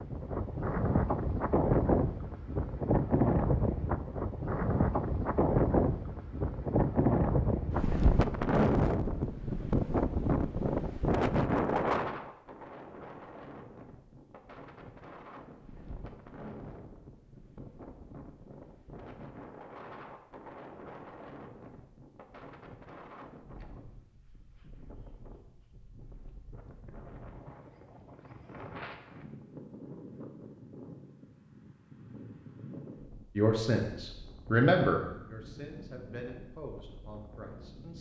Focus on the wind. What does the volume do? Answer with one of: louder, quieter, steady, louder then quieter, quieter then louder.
quieter.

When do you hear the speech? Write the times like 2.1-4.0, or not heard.
33.4-37.9.